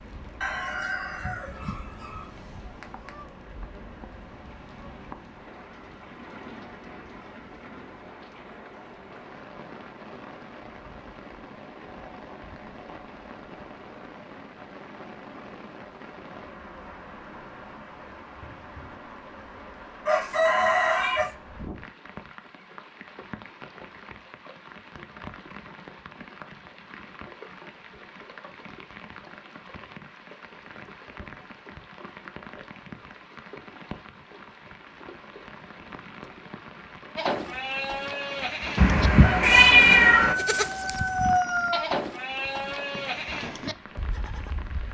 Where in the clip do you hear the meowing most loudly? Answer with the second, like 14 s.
40 s.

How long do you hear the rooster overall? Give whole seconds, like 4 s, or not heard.
6 s.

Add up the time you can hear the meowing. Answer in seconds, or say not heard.
5 s.